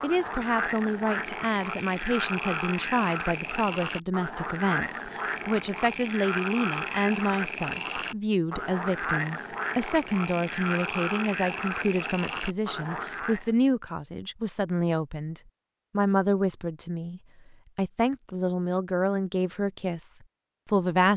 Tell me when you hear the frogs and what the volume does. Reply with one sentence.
The frogs can be heard from 0.0 to 13.5 s, at a steady volume.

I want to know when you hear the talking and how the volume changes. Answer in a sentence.
You can hear the talking from 0.0 to 21.1 s, at a steady volume.